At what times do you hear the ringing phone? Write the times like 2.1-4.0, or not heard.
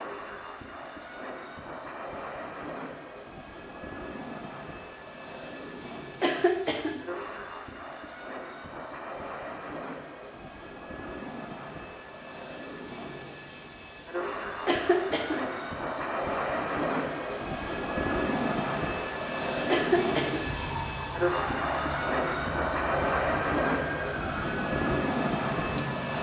not heard.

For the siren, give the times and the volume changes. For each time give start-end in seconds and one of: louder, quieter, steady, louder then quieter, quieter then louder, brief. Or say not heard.
20.4-26.1 steady.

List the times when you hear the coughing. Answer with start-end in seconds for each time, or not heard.
6.2-7.0, 14.7-15.5, 19.6-20.5.